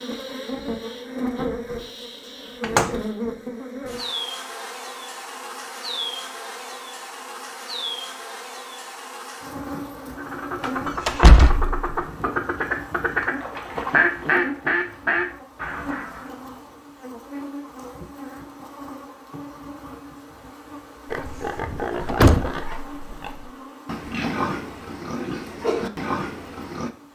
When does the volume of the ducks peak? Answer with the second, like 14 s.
14 s.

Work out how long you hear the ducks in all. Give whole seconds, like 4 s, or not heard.
6 s.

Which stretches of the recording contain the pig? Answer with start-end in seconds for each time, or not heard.
21.1-26.9.